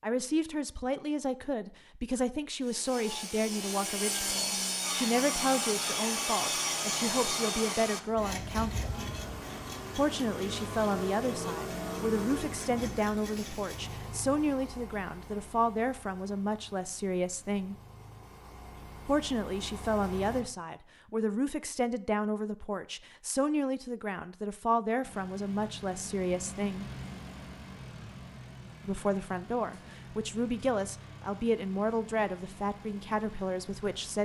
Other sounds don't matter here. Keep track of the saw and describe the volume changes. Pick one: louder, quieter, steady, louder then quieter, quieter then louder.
quieter.